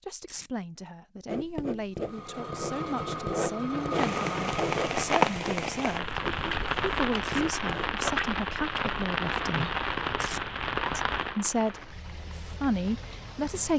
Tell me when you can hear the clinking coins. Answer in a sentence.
You can't hear the clinking coins here.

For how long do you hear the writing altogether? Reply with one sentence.
The writing can be heard for 7 seconds in total.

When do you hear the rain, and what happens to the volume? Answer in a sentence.
The rain can be heard from 3.9 to 13.7 s, getting quieter.